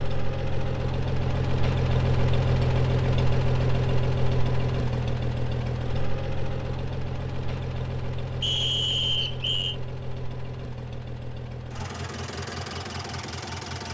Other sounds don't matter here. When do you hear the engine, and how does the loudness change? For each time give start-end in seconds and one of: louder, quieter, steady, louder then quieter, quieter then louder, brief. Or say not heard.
0.0-13.9 quieter.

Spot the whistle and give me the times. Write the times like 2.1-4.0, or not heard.
8.4-9.8.